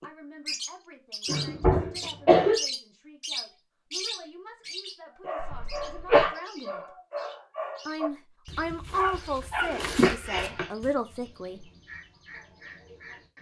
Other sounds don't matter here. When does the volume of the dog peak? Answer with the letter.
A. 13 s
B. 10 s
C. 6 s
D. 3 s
B.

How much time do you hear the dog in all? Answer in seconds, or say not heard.
6 s.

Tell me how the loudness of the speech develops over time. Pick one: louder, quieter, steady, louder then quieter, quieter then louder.
louder.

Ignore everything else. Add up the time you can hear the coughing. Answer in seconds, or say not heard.
3 s.